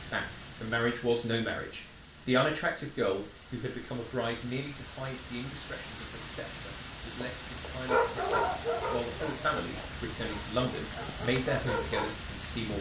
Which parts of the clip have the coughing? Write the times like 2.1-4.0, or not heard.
not heard.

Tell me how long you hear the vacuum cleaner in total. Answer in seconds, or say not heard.
not heard.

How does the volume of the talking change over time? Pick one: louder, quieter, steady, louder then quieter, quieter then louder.
quieter then louder.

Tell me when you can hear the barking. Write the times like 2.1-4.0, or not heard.
7.2-12.1.